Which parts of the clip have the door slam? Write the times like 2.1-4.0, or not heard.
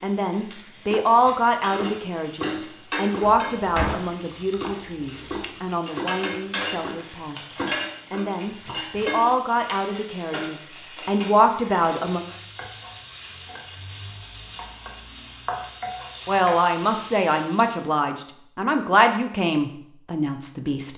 3.2-4.0.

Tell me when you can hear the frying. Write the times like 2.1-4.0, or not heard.
0.0-17.9.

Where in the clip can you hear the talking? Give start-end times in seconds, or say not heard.
0.0-12.2, 16.2-20.9.